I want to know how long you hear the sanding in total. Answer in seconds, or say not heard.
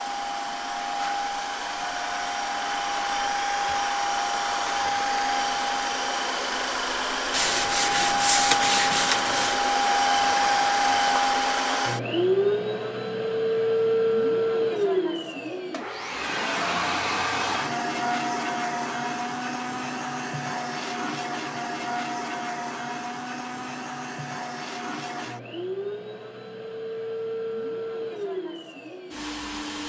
2 s.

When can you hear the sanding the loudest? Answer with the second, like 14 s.
8 s.